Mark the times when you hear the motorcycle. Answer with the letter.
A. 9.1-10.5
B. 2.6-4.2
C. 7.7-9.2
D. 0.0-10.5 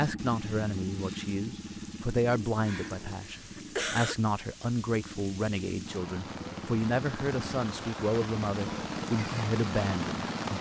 D.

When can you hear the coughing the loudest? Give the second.
4 s.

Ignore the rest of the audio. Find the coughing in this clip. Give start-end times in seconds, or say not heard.
2.6-4.2.